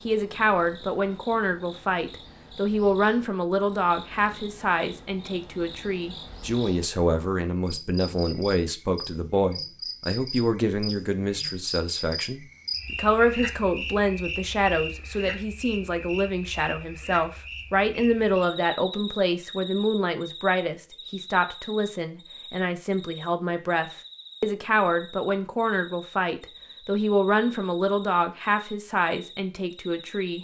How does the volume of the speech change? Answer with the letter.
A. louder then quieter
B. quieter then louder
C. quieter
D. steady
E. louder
D.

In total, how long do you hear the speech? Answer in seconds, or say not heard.
30 s.